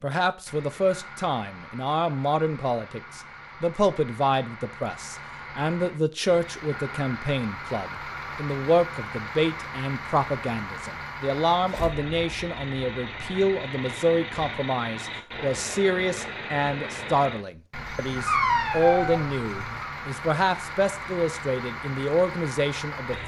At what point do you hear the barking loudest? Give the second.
18 s.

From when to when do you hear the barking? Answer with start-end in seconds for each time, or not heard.
17.9-19.9.